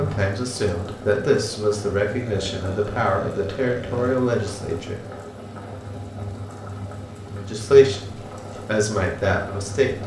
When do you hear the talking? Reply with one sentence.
You can hear the talking from 0.0 to 5.0 s and from 7.3 to 10.0 s.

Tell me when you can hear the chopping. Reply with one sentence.
The chopping can't be heard in this clip.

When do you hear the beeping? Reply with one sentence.
You can't hear the beeping here.